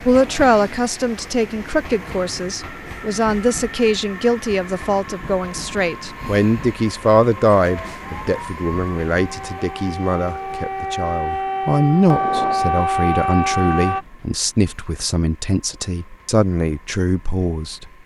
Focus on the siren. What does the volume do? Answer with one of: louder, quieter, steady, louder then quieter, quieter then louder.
louder.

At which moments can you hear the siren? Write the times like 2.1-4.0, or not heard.
7.7-14.1.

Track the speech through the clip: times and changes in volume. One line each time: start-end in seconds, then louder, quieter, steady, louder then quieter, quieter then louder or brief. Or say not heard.
0.1-17.9 steady.